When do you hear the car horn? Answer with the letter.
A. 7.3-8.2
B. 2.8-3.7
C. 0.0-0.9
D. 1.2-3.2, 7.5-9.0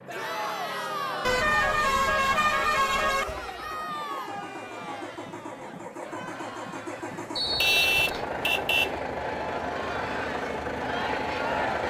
D.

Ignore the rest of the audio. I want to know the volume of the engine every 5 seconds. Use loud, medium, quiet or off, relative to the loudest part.
quiet, loud, loud.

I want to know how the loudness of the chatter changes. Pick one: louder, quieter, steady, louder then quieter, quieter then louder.
quieter then louder.